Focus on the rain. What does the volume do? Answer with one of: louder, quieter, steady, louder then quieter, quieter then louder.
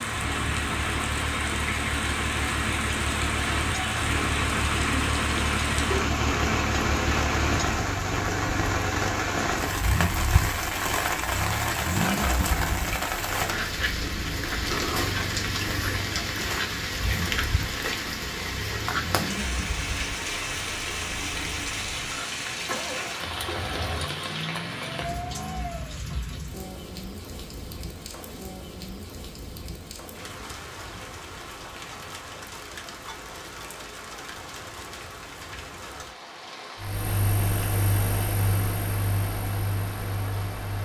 quieter.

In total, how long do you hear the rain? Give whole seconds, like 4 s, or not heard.
41 s.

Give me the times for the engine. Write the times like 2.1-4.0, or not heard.
0.0-26.1, 36.8-40.7.